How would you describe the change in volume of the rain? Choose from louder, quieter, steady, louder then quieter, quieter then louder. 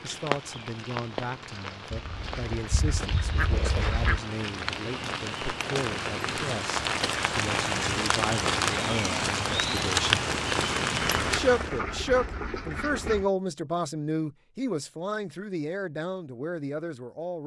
louder.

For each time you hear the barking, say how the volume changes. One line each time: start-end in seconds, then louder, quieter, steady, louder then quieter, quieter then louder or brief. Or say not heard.
not heard.